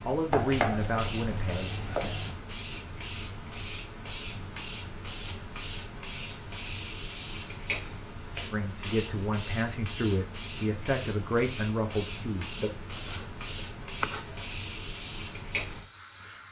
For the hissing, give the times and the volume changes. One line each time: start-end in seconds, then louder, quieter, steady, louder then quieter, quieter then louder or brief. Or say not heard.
0.0-16.4 steady.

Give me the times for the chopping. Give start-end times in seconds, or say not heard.
0.3-2.4, 12.9-14.4.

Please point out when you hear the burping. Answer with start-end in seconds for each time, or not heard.
not heard.